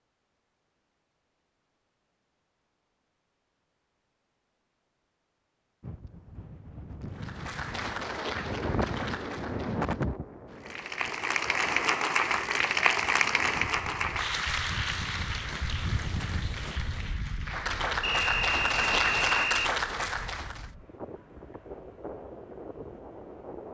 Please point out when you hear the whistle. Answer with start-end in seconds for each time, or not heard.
18.0-19.7.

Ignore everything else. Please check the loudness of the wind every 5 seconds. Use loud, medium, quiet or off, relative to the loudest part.
off, loud, medium, medium, medium.